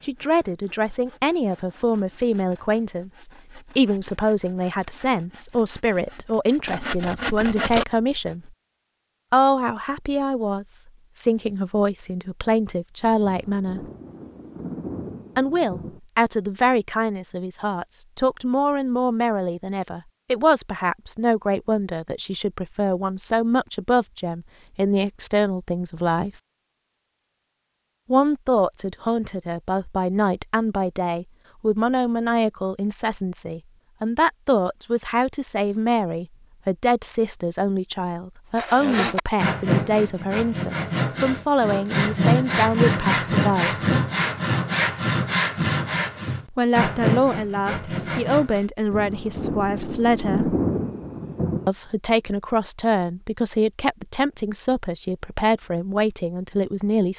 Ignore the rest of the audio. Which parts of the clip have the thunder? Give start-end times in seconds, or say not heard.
13.2-16.0, 48.9-51.7.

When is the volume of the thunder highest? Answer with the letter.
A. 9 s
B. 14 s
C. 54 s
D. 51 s
D.